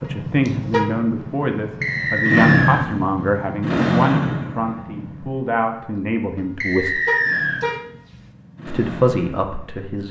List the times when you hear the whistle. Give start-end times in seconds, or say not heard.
1.8-2.9, 6.6-7.6.